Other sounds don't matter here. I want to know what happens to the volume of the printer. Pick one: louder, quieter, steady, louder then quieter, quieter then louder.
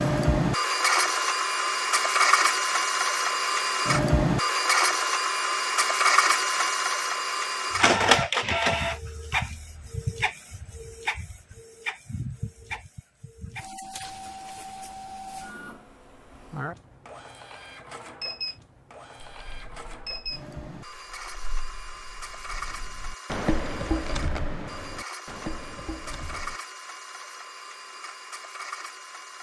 quieter.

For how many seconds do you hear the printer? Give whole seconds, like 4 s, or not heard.
29 s.